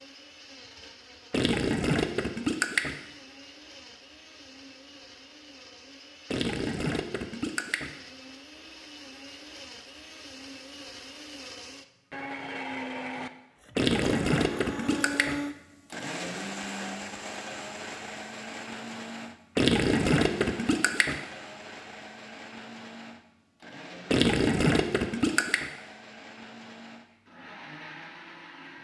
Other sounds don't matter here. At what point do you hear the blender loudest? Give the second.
15 s.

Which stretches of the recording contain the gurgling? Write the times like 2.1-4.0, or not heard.
1.3-3.0, 6.3-7.9, 13.8-15.4, 19.6-21.2, 24.1-25.7.